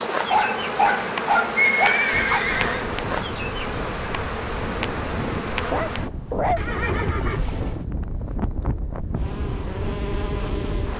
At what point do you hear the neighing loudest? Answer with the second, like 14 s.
2 s.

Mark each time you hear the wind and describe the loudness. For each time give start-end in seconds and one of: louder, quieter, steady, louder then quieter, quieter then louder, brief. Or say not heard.
2.1-10.9 steady.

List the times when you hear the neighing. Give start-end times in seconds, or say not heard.
1.6-2.9, 6.5-7.8.